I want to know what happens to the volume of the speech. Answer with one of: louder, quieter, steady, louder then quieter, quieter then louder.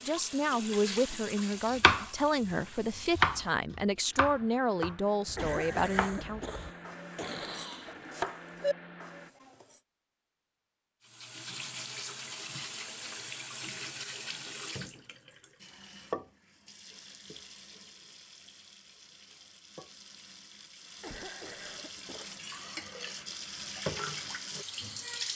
steady.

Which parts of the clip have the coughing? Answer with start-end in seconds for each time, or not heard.
5.3-8.0, 21.0-22.4.